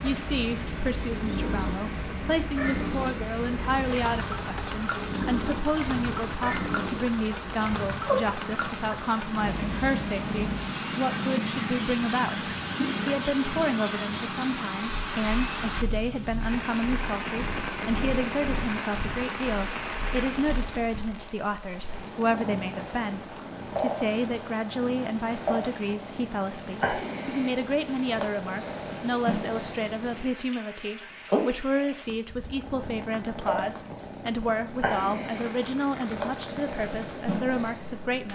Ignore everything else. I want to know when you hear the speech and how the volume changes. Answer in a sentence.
The speech can be heard from 0.0 to 38.2 s, at a steady volume.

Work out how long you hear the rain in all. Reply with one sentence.
You can hear the rain for 38 seconds altogether.